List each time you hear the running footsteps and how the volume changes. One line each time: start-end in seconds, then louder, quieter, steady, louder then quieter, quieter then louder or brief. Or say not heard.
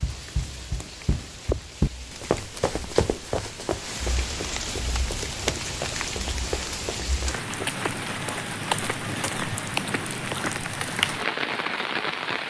0.0-7.8 louder then quieter.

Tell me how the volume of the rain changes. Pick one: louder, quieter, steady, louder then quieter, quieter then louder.
louder.